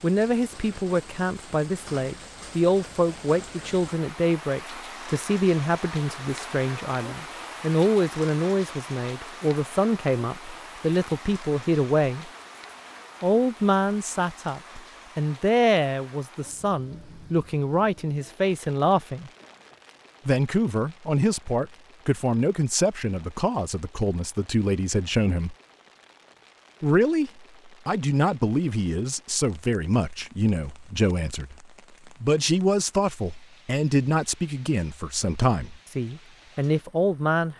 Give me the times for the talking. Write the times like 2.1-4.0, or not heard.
0.0-12.3, 13.2-19.3, 20.2-25.6, 26.8-37.5.